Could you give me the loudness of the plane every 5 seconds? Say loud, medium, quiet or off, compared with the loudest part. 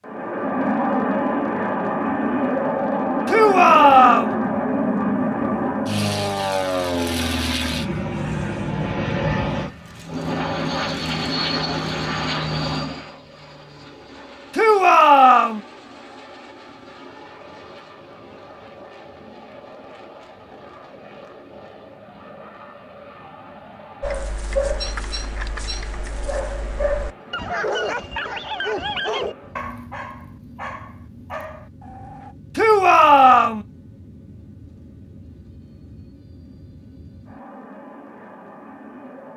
loud, loud, medium, quiet, quiet, quiet, quiet, quiet.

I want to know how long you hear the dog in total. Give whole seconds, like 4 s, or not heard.
8 s.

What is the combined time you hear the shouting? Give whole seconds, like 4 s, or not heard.
3 s.